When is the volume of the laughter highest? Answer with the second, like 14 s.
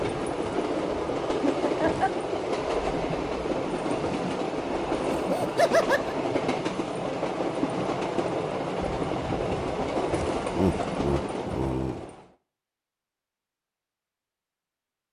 6 s.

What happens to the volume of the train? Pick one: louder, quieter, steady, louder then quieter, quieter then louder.
steady.